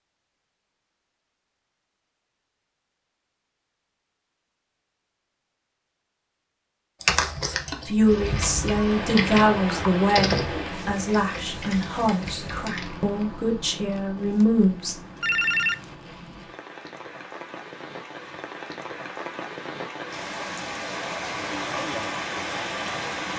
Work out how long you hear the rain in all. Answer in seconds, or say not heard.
15 s.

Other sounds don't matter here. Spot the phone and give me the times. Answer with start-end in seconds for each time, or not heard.
14.4-15.9.